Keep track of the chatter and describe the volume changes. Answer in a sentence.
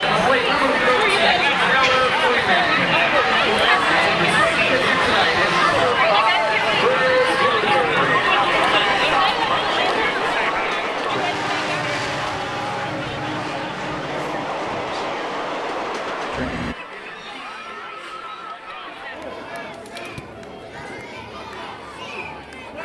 The volume of the chatter goes down.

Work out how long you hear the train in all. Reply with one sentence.
You can hear the train for 17 seconds altogether.